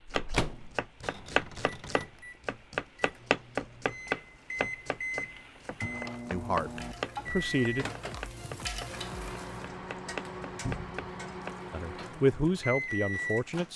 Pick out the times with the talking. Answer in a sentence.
You can hear the talking from 6.3 to 7.8 s and from 11.7 to 13.7 s.